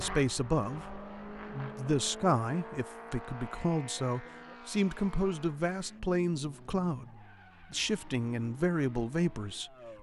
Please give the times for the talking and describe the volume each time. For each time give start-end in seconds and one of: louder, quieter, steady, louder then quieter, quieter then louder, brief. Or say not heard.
0.0-9.9 steady.